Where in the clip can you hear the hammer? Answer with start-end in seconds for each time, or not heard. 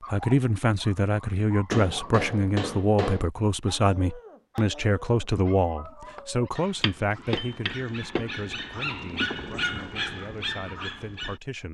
1.7-3.3, 6.8-8.2.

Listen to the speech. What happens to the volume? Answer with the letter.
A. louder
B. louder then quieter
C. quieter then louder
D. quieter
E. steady
D.